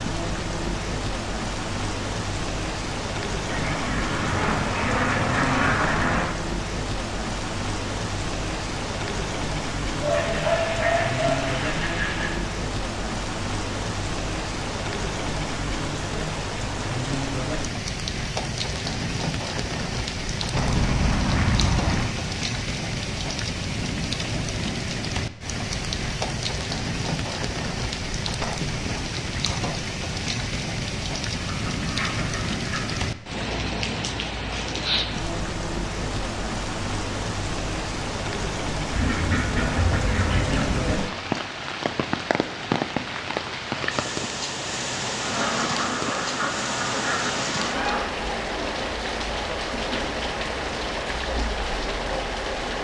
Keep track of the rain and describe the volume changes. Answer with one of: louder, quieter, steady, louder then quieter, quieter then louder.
steady.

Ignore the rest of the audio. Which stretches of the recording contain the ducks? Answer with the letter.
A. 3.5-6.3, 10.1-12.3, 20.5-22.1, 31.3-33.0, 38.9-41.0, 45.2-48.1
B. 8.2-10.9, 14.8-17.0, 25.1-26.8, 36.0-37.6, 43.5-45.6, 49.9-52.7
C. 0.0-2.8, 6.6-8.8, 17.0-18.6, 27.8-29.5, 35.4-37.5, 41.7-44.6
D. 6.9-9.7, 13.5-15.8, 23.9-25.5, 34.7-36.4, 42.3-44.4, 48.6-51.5
A.